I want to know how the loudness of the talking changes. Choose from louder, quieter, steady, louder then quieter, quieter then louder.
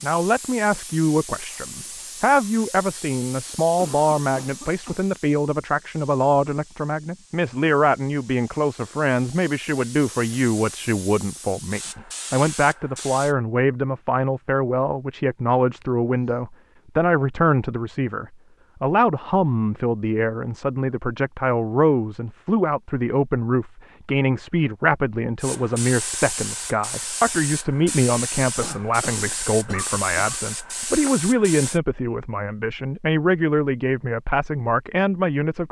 steady.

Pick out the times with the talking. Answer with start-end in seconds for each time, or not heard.
0.0-35.6.